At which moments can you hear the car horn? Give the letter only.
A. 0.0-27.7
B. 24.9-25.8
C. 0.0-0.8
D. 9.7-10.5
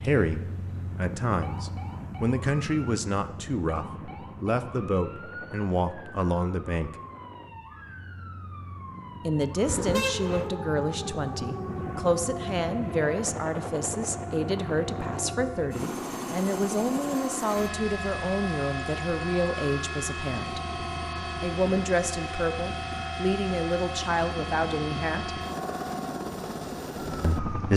D.